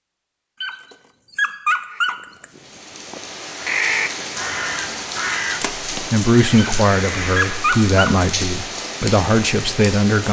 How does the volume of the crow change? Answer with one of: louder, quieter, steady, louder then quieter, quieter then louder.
louder then quieter.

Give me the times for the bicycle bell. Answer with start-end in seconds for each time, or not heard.
not heard.